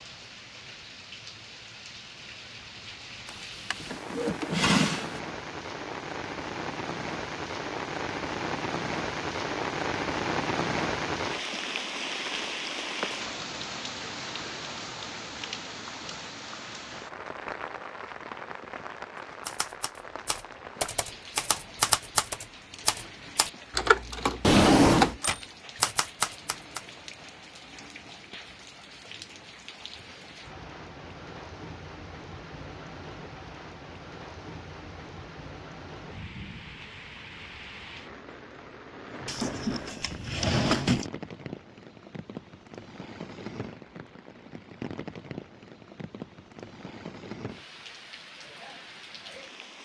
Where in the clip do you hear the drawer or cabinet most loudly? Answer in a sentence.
The volume of the drawer or cabinet peaks at 25 seconds.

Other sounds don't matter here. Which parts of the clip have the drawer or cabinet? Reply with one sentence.
The drawer or cabinet can be heard from 3.2 to 5.2 s, from 24.4 to 25.1 s and from 39.2 to 41.0 s.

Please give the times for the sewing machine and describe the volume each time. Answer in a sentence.
The sewing machine can't be heard in this clip.